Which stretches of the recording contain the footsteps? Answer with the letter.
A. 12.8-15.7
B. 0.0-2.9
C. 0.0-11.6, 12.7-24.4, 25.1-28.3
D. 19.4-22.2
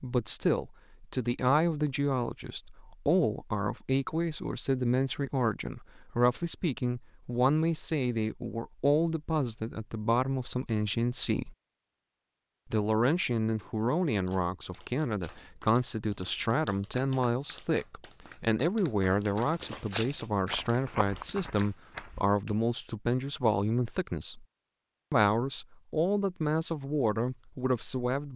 D.